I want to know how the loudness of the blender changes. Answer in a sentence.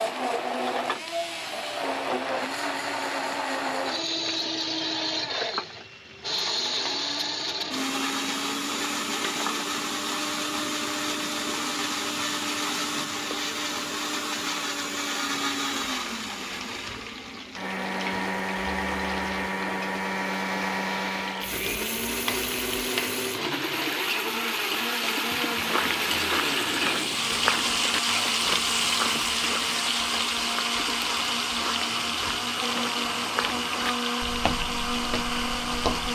The loudness of the blender stays about the same.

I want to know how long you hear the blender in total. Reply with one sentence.
You can hear the blender for 36 seconds altogether.